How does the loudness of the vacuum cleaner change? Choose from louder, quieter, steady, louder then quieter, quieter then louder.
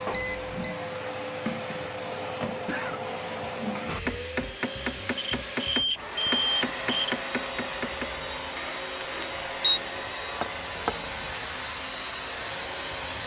steady.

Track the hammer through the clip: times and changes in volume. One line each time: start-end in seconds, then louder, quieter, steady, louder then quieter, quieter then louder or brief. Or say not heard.
3.9-11.0 quieter then louder.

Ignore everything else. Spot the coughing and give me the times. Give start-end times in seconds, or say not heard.
2.5-3.2.